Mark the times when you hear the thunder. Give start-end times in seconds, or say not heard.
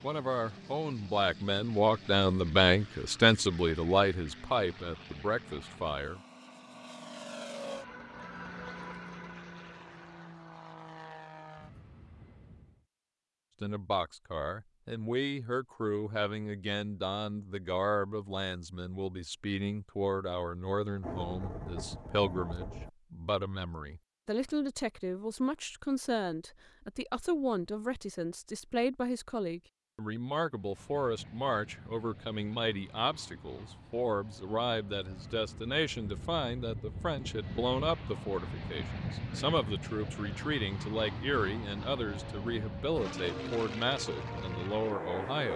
21.0-22.9.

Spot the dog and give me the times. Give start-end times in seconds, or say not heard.
not heard.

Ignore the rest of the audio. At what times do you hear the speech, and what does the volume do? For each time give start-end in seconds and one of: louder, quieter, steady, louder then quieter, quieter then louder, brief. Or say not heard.
0.0-6.2 louder then quieter
13.6-45.5 steady.